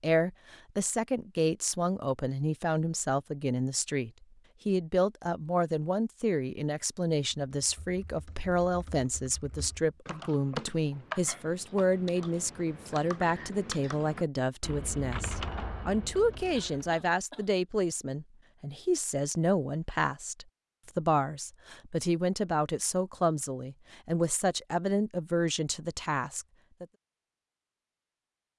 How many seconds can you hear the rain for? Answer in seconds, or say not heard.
not heard.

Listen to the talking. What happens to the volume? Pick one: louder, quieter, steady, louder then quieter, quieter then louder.
steady.